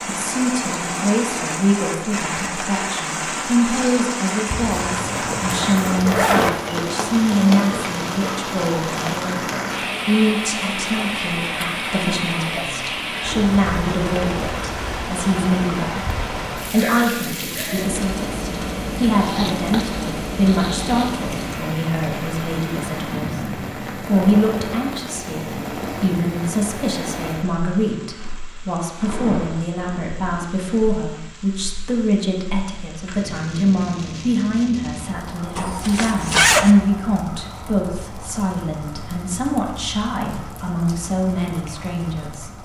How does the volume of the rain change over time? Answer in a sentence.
The loudness of the rain goes down.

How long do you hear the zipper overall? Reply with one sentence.
You can hear the zipper for 5 seconds altogether.